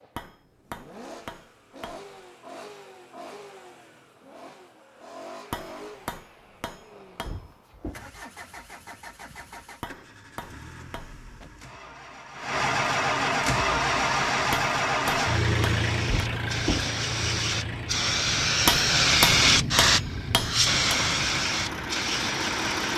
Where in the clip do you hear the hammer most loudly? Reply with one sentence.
The volume of the hammer peaks at 19 seconds.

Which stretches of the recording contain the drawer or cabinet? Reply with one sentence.
The drawer or cabinet can be heard from 7.2 to 8.0 s and from 16.1 to 16.9 s.